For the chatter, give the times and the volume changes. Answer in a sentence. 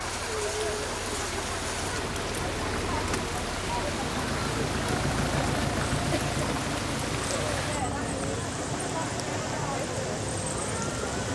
The chatter can be heard from 0.0 to 11.3 s, at a steady volume.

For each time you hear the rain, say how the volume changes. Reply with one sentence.
The rain can be heard from 0.0 to 11.3 s, at a steady volume.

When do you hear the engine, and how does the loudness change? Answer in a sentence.
You can hear the engine from 0.0 to 11.2 s, getting louder then quieter.